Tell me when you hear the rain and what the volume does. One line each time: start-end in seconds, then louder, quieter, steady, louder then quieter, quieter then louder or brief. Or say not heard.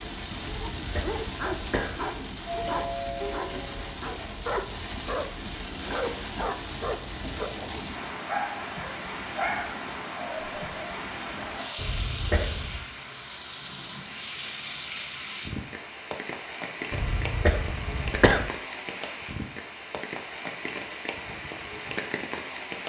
0.0-22.8 steady.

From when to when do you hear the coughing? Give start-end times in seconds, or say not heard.
0.7-2.0, 11.8-12.8, 16.9-18.5.